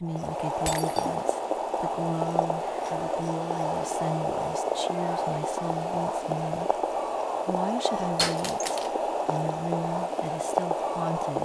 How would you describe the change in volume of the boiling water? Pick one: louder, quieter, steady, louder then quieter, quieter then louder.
steady.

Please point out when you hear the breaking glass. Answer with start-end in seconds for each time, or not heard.
0.7-1.1, 8.2-8.9.